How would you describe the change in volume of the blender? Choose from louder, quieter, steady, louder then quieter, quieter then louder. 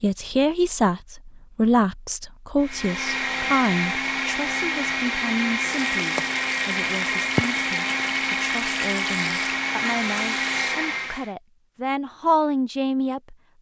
steady.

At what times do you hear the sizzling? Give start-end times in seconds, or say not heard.
5.7-10.8.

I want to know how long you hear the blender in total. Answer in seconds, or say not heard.
9 s.